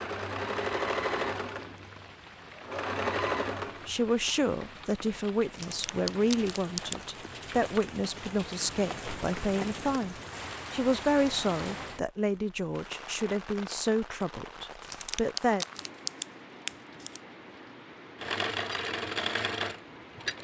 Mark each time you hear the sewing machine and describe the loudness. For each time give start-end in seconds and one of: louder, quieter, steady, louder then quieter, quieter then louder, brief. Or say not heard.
0.0-4.0 quieter then louder
18.2-20.3 brief.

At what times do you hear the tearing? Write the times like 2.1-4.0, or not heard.
5.4-7.0, 14.7-17.2.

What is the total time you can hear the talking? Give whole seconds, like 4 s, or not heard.
12 s.